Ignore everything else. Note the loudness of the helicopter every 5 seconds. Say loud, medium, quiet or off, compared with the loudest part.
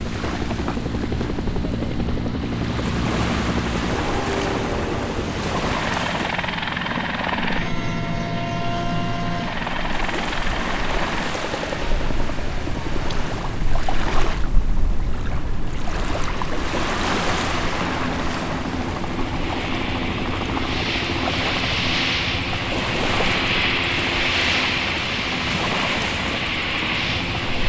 loud, loud, medium, medium, loud, loud.